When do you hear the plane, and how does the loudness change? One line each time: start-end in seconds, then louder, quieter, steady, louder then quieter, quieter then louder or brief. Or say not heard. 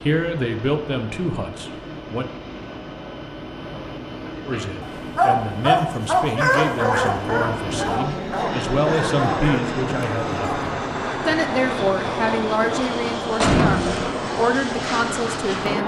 0.0-15.8 louder.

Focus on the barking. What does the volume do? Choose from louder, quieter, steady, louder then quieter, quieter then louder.
quieter.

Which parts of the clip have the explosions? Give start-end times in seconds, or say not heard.
13.4-14.1.